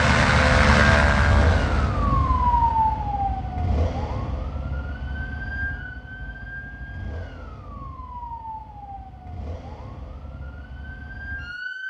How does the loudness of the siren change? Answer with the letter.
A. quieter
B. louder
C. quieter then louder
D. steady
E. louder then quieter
A.